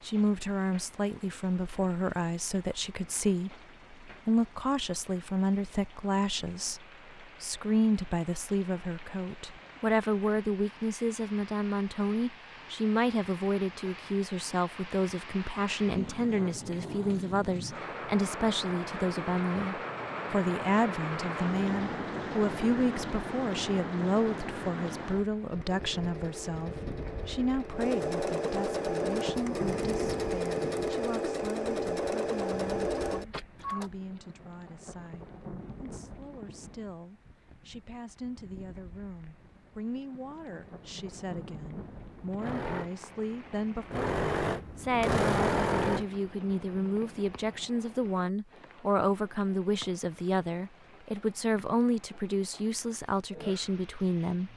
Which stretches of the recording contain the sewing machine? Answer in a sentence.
The sewing machine can be heard from 25.5 to 33.9 s and from 40.4 to 47.7 s.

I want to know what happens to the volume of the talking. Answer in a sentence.
The loudness of the talking goes down, then up.